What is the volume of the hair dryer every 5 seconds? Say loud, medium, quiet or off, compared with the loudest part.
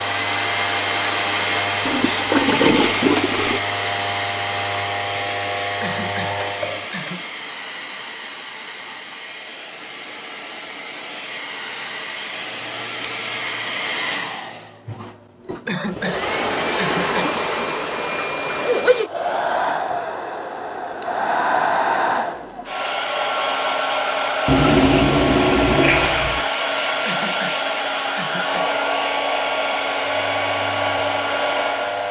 loud, medium, medium, loud, loud, loud, loud.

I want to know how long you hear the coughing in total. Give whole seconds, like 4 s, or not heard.
5 s.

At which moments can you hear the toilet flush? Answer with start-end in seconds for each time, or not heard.
1.9-3.6, 16.2-18.8, 24.4-26.4.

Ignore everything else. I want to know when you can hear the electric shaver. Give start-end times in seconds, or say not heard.
0.0-6.9, 30.2-32.0.